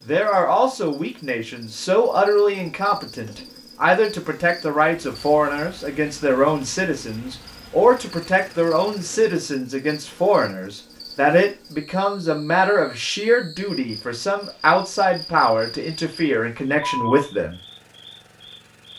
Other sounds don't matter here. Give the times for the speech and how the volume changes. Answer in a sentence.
You can hear the speech from 0.0 to 17.6 s, at a steady volume.